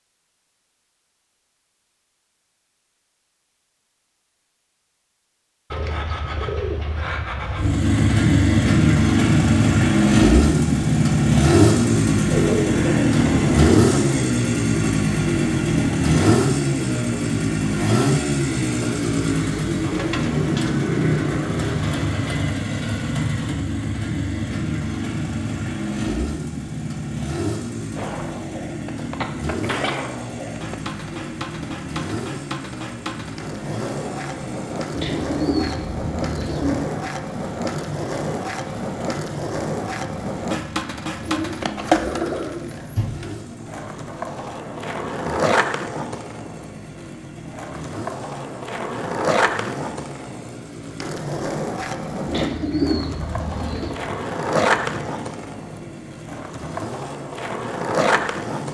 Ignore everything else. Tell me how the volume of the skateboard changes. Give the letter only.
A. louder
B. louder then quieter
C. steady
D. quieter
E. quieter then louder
A.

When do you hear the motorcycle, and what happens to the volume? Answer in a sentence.
The motorcycle can be heard from 7.3 to 58.7 s, getting quieter.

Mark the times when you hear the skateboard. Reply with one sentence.
You can hear the skateboard from 27.9 to 58.7 s.